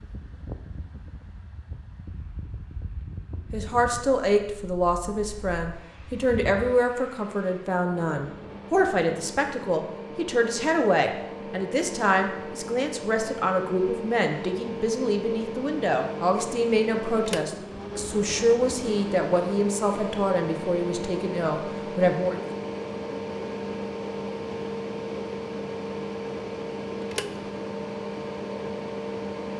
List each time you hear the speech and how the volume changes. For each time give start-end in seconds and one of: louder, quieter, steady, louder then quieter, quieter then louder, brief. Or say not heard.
3.5-22.4 steady.